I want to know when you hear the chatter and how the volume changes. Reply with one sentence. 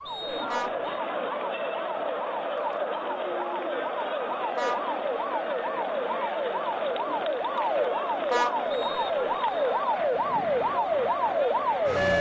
The chatter can be heard from 0.0 to 12.1 s, at a steady volume.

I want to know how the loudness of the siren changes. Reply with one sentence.
The volume of the siren goes up.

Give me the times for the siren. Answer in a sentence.
The siren can be heard from 0.0 to 12.1 s.